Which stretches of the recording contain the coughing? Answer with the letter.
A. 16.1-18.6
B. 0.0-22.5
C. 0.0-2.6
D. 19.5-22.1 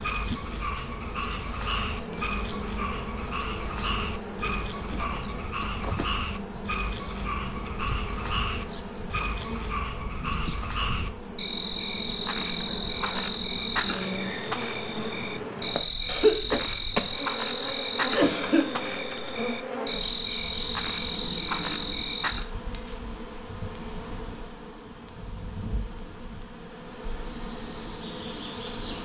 A.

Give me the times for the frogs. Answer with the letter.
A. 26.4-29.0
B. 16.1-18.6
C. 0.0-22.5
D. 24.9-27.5
C.